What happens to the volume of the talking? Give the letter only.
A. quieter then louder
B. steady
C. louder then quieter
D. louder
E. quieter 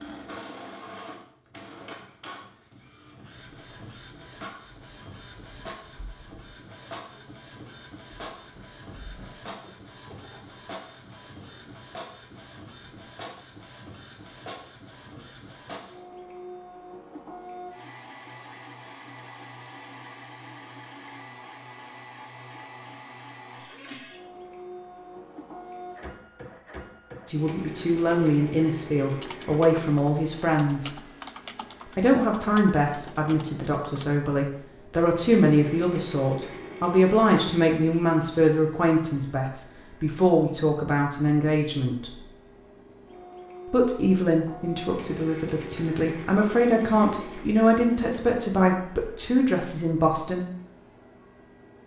B.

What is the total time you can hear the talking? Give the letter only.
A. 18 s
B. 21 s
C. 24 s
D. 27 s
B.